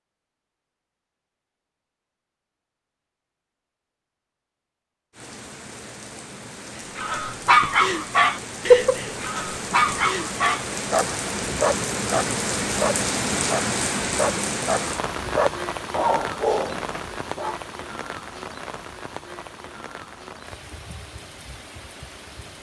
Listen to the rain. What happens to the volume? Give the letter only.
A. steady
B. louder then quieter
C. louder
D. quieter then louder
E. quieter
B.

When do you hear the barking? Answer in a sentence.
The barking can be heard from 7.0 to 17.6 s.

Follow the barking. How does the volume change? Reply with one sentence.
The loudness of the barking goes down.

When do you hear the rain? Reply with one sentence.
The rain can be heard from 5.1 to 22.5 s.